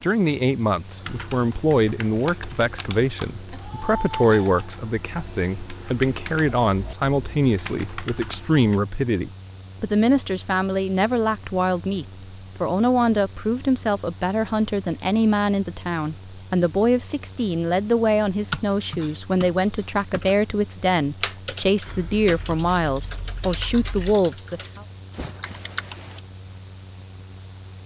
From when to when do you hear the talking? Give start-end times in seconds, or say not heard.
0.0-24.8.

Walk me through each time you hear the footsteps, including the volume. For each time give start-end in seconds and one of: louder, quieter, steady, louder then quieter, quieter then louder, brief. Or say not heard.
not heard.